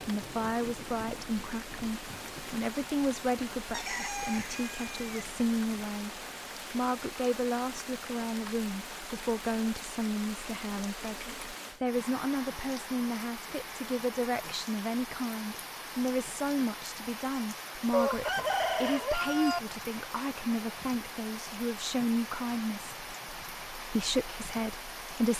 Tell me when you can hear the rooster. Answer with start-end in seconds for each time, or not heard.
3.7-5.2, 17.9-19.6.